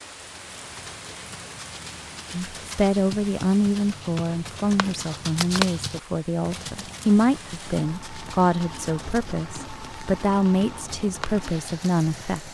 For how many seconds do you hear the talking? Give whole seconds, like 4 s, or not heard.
10 s.